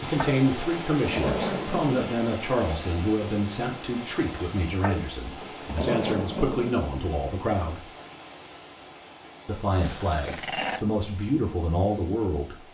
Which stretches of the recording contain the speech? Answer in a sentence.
The speech can be heard from 0.0 to 7.9 s and from 9.4 to 12.6 s.